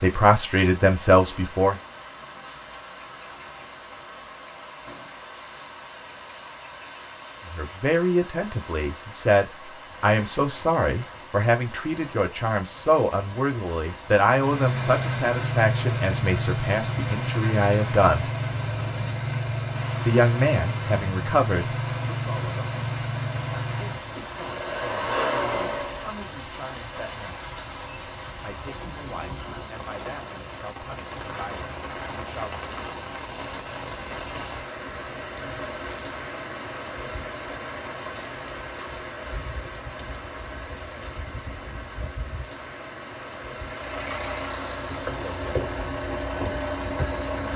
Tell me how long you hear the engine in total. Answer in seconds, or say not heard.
16 s.